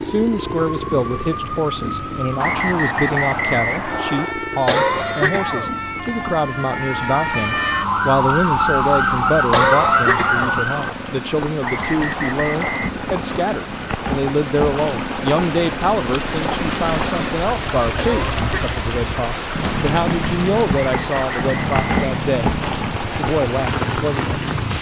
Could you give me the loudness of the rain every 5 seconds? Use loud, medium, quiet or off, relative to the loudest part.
quiet, quiet, medium, loud, loud.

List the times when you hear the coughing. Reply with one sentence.
The coughing can be heard from 4.7 to 5.7 s, from 9.5 to 10.6 s and from 17.9 to 18.8 s.